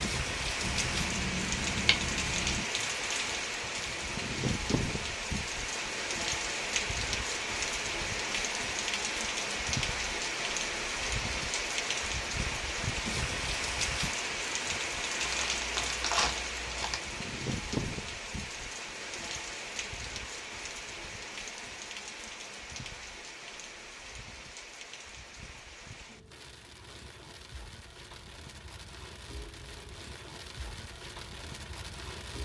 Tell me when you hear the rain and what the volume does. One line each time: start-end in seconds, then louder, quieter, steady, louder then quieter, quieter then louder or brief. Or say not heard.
0.0-32.4 quieter.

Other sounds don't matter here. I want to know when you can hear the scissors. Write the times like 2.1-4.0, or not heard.
0.6-2.6.